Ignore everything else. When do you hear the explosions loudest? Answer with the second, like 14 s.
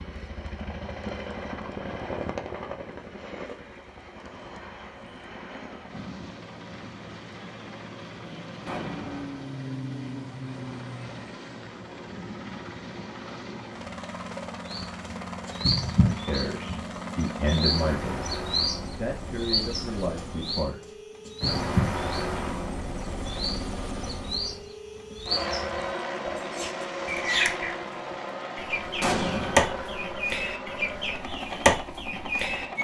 29 s.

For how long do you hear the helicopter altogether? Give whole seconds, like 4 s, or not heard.
33 s.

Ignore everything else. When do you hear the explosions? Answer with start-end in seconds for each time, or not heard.
8.7-9.5, 29.0-29.8.